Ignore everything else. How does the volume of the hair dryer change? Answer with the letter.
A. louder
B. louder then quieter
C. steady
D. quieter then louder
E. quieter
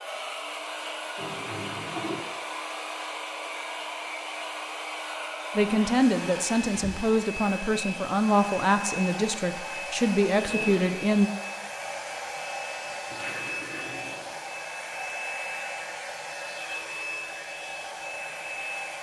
C.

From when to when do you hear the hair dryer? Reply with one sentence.
The hair dryer can be heard from 0.0 to 18.9 s.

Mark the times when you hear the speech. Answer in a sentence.
The speech can be heard from 5.5 to 11.3 s.